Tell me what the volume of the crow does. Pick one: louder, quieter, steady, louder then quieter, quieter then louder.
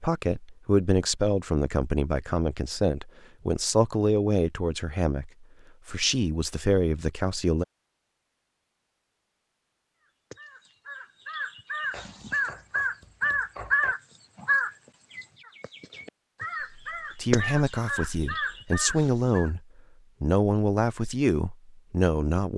louder then quieter.